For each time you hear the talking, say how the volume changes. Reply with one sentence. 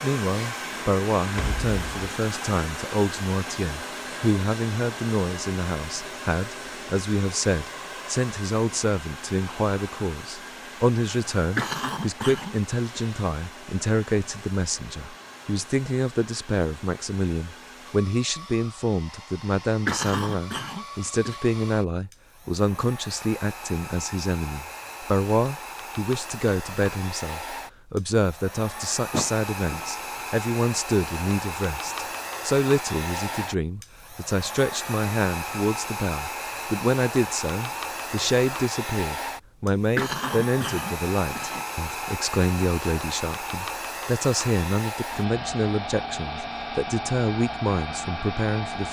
You can hear the talking from 0.0 to 48.8 s, at a steady volume.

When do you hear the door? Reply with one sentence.
You can hear the door from 1.3 to 2.0 s, from 29.1 to 29.9 s and from 41.4 to 42.1 s.